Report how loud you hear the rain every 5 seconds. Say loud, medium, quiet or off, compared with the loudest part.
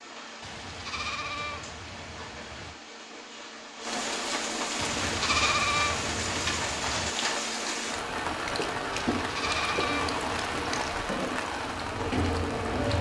medium, loud, loud.